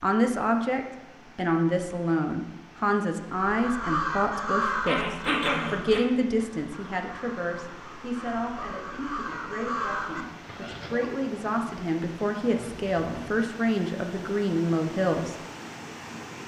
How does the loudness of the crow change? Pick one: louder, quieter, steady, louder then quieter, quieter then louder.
quieter then louder.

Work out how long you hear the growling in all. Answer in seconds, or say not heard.
2 s.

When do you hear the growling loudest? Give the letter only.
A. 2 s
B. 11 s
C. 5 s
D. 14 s
C.